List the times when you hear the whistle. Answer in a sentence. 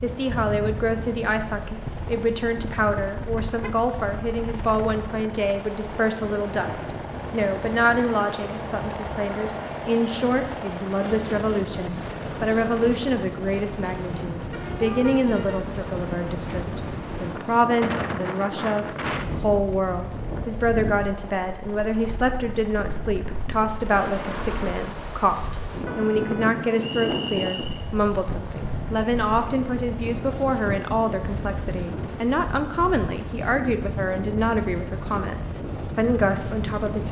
The whistle can be heard from 26.8 to 27.8 s.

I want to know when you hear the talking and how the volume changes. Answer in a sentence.
The talking can be heard from 0.0 to 37.0 s, at a steady volume.